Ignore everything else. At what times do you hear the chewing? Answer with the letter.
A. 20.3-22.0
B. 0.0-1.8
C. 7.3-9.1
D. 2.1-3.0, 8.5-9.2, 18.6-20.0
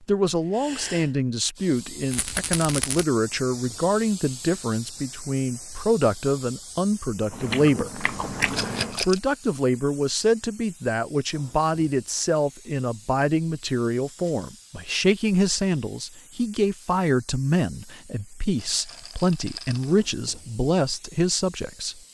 C.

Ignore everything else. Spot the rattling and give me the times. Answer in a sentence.
You can hear the rattling from 2.1 to 3.0 s, from 8.5 to 9.2 s and from 18.6 to 20.0 s.